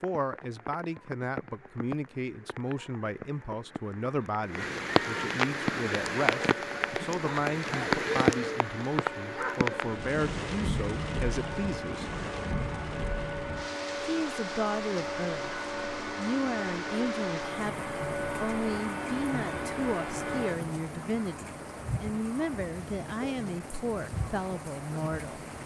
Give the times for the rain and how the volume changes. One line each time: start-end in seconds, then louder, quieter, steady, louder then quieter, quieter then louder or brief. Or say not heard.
0.0-25.6 louder then quieter.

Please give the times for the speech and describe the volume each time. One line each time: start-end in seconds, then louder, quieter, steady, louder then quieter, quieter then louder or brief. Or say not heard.
0.0-12.1 steady
14.1-15.5 brief
16.1-25.4 steady.